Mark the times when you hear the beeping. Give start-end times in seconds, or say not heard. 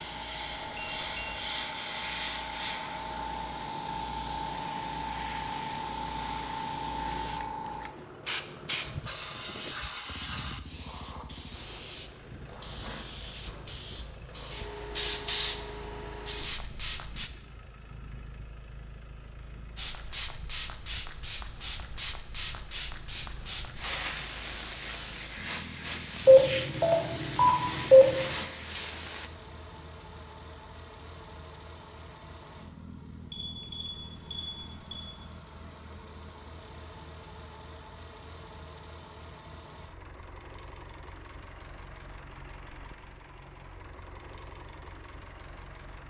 0.5-1.4, 26.2-28.2, 33.3-35.0.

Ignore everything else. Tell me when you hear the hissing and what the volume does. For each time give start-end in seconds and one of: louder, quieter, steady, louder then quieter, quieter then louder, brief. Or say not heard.
0.0-17.3 steady
19.8-29.3 steady.